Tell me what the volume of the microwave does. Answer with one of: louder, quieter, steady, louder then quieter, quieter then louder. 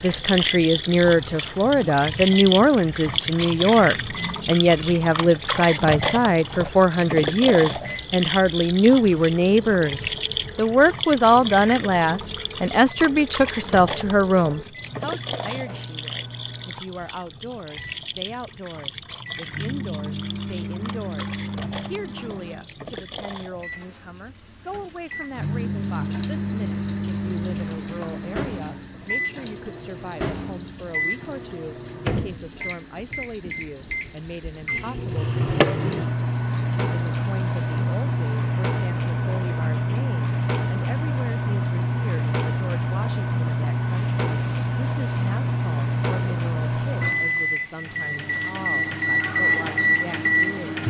louder.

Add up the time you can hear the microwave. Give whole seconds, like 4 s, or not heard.
51 s.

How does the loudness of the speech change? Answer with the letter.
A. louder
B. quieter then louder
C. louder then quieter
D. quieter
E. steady
D.